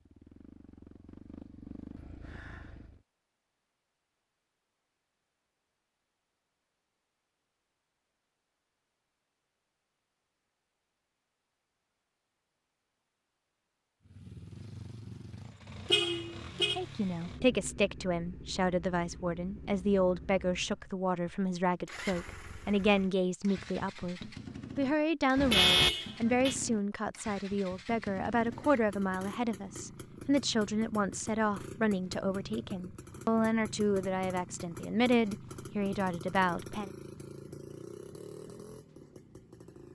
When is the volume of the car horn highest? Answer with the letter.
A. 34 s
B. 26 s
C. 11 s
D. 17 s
B.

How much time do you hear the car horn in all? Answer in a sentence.
The car horn can be heard for 2 seconds in total.